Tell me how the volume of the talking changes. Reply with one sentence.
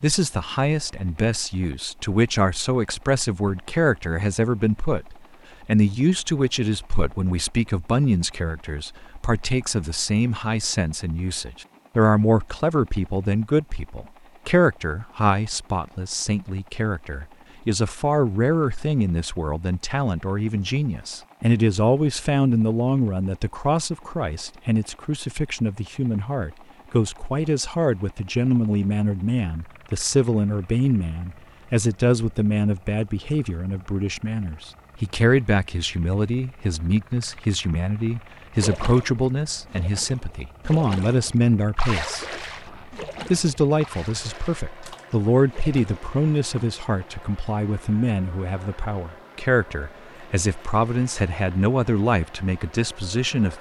The loudness of the talking stays about the same.